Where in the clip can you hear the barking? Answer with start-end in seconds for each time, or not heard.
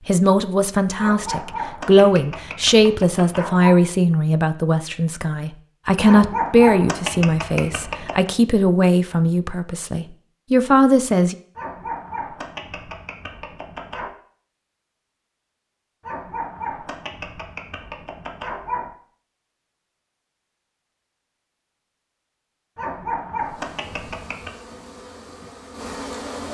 0.9-3.8, 6.0-8.3, 11.6-14.1, 16.0-18.9, 22.8-24.6.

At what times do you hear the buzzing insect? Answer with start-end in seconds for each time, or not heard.
23.4-26.4.